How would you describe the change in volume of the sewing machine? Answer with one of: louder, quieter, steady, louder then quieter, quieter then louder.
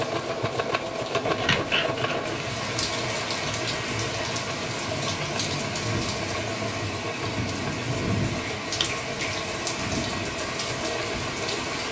quieter.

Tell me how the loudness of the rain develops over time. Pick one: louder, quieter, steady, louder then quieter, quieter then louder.
louder.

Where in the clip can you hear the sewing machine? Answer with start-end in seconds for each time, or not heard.
0.0-11.8.